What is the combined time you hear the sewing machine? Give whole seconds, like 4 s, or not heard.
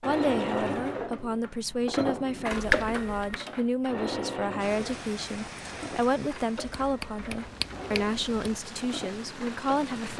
10 s.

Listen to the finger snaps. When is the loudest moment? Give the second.
3 s.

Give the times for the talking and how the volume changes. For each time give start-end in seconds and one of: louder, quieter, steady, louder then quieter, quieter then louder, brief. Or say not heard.
0.0-10.1 steady.